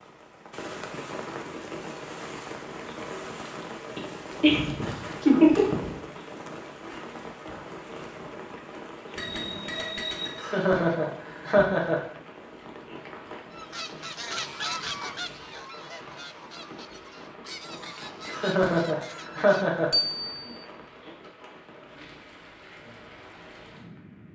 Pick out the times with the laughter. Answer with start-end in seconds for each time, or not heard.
4.0-5.9, 10.3-12.0, 18.2-19.9.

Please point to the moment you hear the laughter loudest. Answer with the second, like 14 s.
5 s.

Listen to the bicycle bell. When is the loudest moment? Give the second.
20 s.